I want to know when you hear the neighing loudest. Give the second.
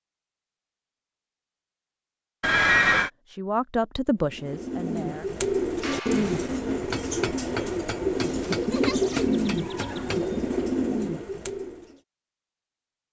3 s.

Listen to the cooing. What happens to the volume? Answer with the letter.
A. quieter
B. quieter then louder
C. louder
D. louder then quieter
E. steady
E.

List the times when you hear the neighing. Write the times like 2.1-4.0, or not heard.
2.4-3.1, 8.2-10.2.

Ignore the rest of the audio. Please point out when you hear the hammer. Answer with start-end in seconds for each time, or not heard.
5.8-10.2.